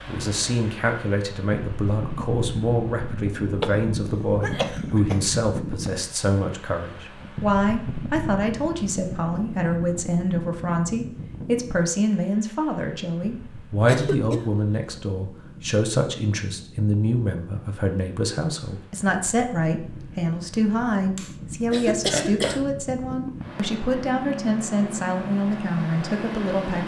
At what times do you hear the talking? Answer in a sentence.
You can hear the talking from 0.1 to 26.8 s.